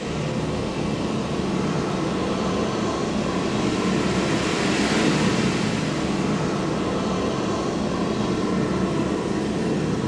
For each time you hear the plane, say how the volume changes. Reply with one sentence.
The plane can be heard from 0.0 to 10.0 s, at a steady volume.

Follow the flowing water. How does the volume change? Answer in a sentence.
The loudness of the flowing water goes up, then down.